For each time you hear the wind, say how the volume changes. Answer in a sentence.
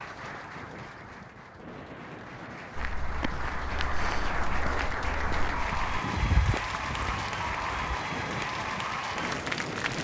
You can hear the wind from 0.0 to 9.9 s, getting louder.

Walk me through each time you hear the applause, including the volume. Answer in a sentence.
You can hear the applause from 0.0 to 9.9 s, getting louder.